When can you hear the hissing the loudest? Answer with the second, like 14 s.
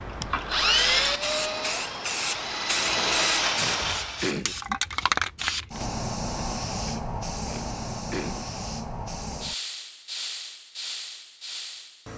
5 s.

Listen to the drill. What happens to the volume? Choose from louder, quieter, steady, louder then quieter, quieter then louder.
quieter then louder.